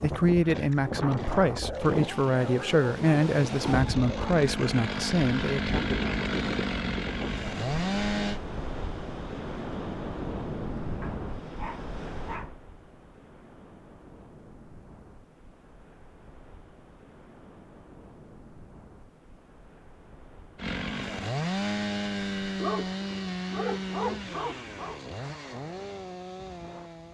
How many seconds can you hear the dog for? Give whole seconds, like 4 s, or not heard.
7 s.